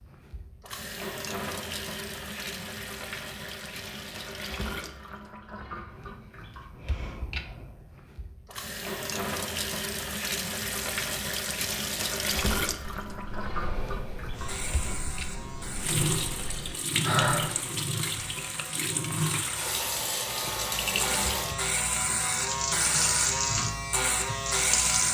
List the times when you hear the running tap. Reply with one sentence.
You can hear the running tap from 0.0 to 25.1 s.